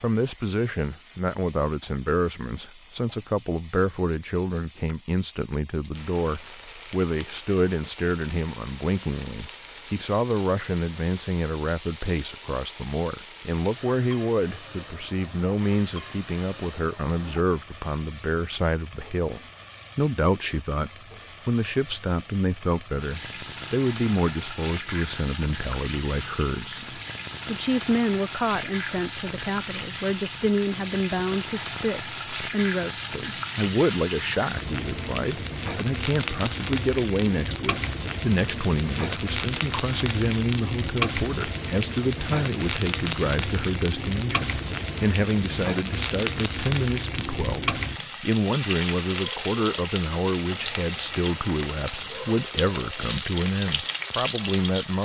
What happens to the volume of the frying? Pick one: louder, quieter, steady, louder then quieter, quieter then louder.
louder.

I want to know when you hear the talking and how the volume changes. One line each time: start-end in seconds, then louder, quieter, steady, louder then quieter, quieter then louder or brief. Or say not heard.
0.0-55.0 steady.